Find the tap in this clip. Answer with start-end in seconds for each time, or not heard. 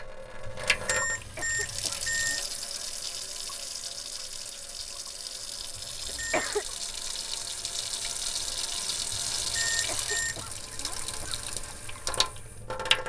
0.0-13.0.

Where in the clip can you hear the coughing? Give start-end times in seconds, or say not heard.
1.1-2.5, 6.0-6.7, 9.7-11.4.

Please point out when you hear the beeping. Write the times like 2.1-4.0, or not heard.
0.5-2.5, 5.8-6.5, 9.1-10.7.